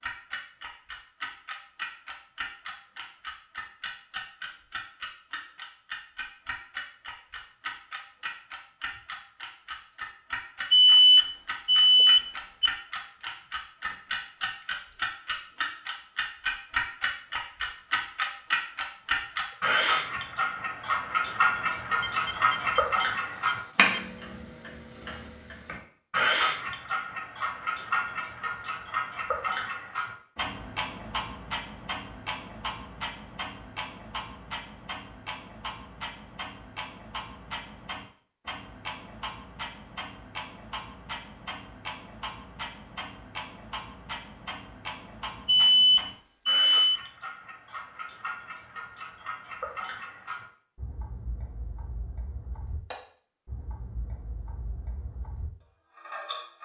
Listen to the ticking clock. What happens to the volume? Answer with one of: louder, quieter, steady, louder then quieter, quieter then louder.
louder then quieter.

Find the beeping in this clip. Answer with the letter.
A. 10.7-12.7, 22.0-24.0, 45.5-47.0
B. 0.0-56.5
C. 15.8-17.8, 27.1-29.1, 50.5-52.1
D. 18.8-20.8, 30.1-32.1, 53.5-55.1
A.